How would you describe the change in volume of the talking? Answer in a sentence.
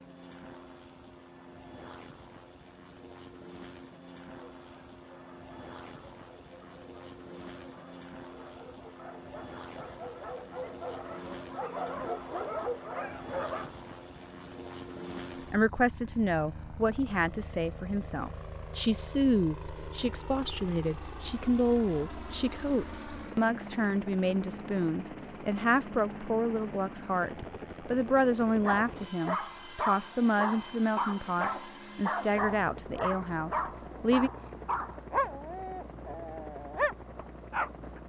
The volume of the talking stays about the same.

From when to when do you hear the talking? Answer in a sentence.
The talking can be heard from 15.5 to 34.3 s.